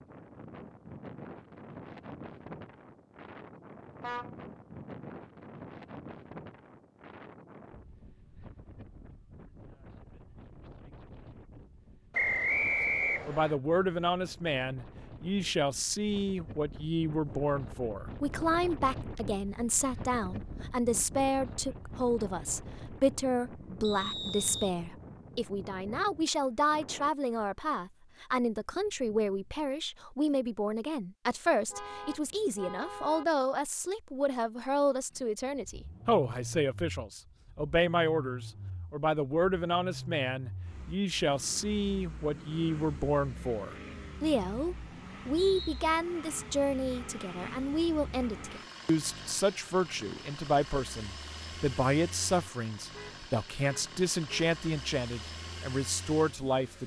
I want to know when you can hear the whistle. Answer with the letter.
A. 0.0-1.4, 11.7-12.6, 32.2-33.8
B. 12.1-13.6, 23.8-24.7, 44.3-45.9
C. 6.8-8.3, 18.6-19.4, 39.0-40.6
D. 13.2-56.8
B.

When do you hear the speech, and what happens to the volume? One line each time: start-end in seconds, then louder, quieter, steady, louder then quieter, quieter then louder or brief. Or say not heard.
13.2-56.8 steady.